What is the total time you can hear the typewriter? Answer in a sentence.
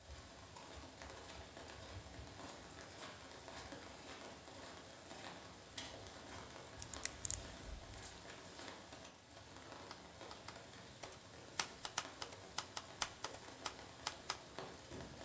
The typewriter can be heard for 5 seconds in total.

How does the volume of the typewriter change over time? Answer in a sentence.
The volume of the typewriter goes up, then down.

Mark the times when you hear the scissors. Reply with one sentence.
You can hear the scissors from 6.8 to 7.8 s.